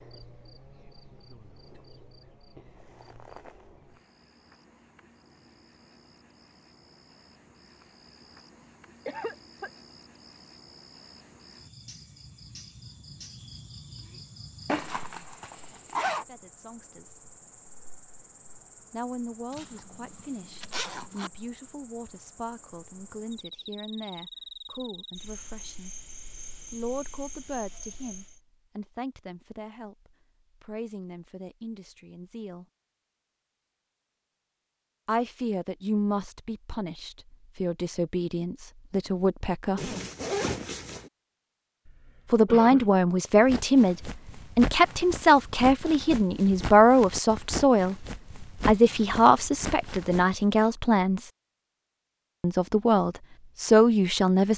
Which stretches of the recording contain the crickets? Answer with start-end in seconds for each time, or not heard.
0.0-28.4.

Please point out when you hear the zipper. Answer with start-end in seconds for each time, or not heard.
14.7-16.2, 19.5-21.3, 39.8-41.1.